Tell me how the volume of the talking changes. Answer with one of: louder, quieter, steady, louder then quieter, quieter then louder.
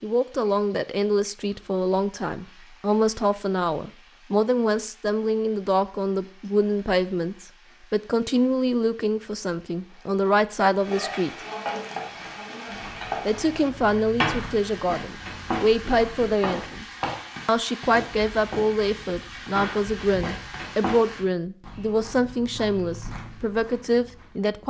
steady.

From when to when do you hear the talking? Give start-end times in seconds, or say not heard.
0.0-11.3, 13.2-16.9, 17.4-24.6.